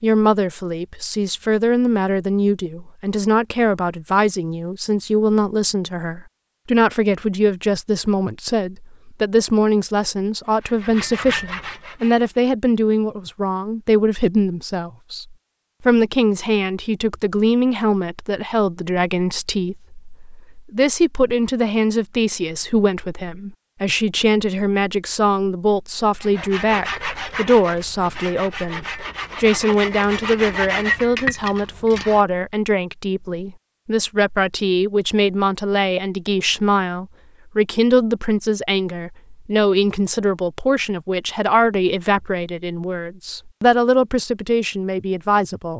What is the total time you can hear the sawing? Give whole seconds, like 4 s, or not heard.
8 s.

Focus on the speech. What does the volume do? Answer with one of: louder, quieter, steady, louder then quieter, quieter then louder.
steady.